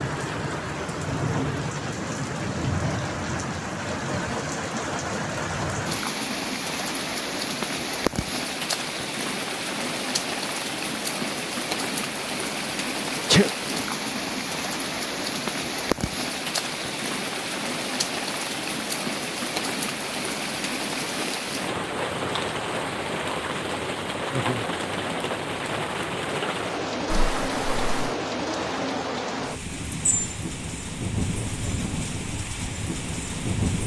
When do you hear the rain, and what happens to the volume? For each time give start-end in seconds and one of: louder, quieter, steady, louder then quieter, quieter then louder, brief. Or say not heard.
0.0-33.8 steady.